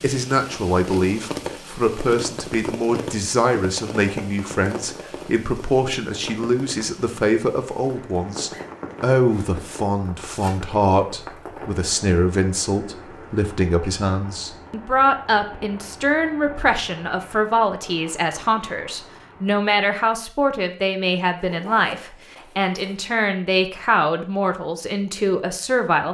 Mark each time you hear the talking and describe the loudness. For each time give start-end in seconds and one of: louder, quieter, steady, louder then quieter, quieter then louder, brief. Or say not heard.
0.0-26.0 steady.